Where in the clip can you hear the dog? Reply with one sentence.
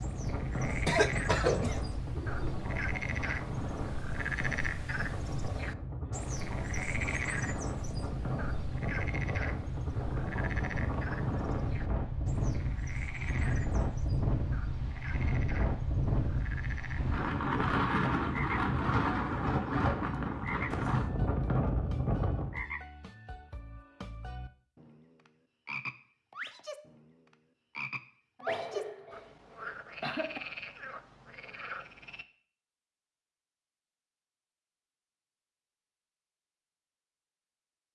You can't hear the dog here.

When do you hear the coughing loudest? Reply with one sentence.
The loudest moment of the coughing is at 1 second.